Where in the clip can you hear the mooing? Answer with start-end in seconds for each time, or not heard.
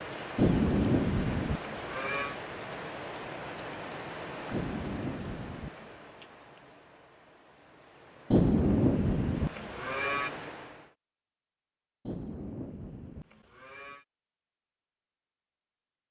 0.3-2.4, 4.5-6.0, 8.3-10.3, 12.1-14.1.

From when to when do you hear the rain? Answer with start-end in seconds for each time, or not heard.
0.0-10.9.